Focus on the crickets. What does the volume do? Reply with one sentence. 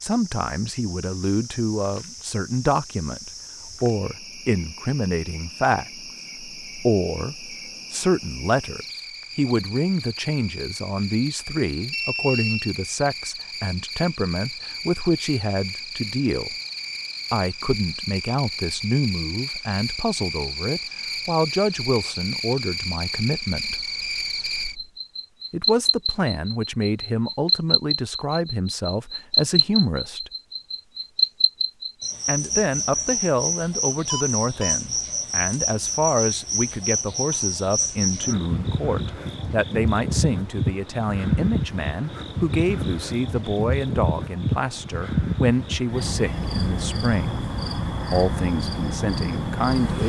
The loudness of the crickets goes up.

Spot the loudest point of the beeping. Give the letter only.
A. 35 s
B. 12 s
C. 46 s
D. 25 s
B.